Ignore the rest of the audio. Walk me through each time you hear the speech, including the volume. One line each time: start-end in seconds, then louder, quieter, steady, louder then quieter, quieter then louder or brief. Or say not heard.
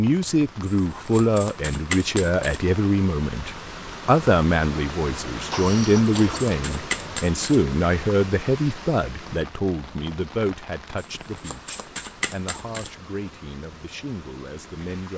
0.0-15.1 quieter.